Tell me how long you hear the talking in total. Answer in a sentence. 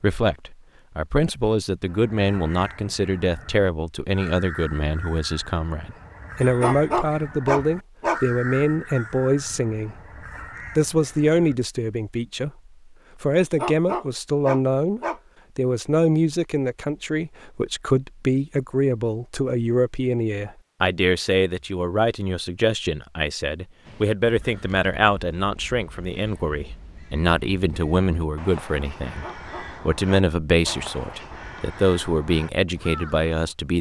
The talking can be heard for 32 seconds in total.